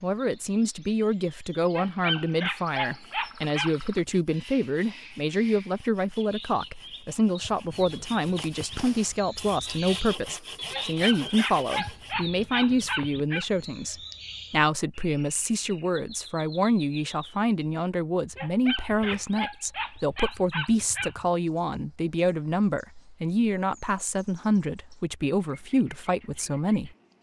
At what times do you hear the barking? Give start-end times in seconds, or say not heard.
1.7-3.8, 10.7-13.4, 18.4-21.1.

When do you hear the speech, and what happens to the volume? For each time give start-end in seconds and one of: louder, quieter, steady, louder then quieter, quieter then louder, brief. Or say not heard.
0.0-27.1 steady.